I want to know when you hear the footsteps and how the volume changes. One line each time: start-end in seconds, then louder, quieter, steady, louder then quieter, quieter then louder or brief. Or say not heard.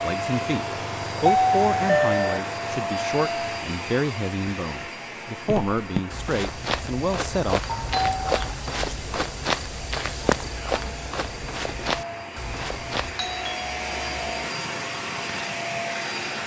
5.5-13.2 steady.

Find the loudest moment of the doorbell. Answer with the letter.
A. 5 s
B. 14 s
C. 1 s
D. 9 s
C.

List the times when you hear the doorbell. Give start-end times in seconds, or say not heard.
0.7-2.4, 7.7-8.6, 13.2-14.4.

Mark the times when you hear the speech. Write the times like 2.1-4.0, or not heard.
0.0-7.6.